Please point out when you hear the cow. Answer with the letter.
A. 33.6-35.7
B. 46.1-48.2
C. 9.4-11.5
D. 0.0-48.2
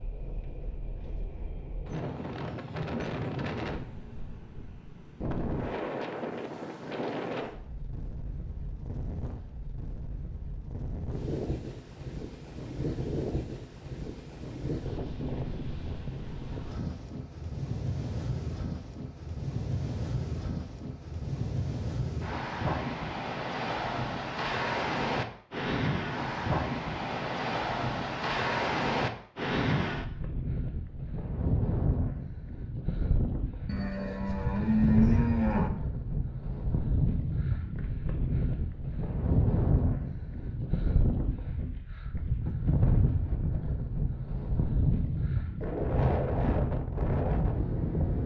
A.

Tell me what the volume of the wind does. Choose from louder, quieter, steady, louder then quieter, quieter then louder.
louder.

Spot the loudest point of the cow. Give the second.
35 s.